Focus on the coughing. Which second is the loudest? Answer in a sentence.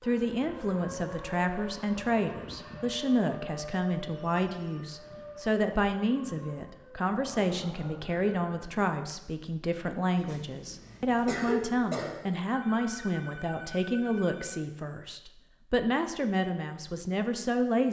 The volume of the coughing peaks at 11 seconds.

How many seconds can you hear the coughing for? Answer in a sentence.
You can hear the coughing for 2 seconds altogether.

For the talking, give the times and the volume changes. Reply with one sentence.
You can hear the talking from 0.0 to 17.8 s, at a steady volume.